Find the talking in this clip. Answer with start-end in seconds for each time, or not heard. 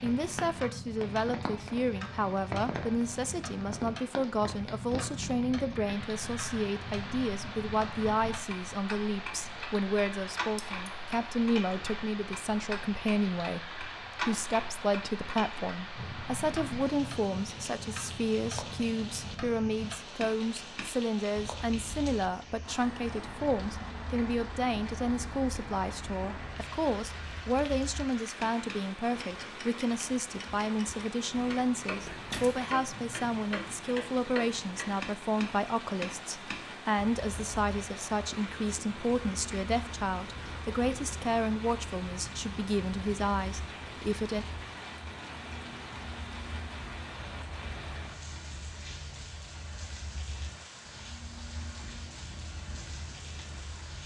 0.0-44.5.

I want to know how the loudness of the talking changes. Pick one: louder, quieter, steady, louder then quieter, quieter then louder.
steady.